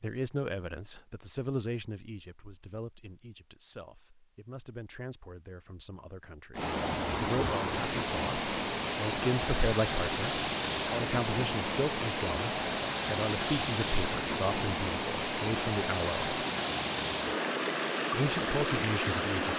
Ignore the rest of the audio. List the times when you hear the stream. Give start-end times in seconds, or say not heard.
6.5-19.5.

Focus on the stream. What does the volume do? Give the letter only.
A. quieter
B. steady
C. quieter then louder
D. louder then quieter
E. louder
B.